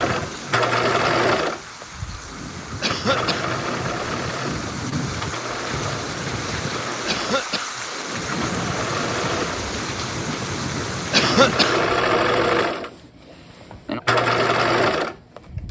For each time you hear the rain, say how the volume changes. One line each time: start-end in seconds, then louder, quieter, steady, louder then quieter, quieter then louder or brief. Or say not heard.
0.0-11.8 louder.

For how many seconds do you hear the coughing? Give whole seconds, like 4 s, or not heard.
2 s.